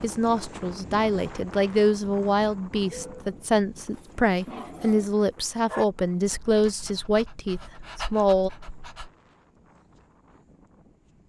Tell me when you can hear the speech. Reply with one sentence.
You can hear the speech from 0.0 to 8.5 s.